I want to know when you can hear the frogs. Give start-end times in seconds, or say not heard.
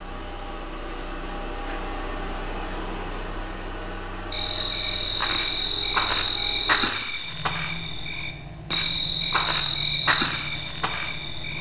4.3-11.5.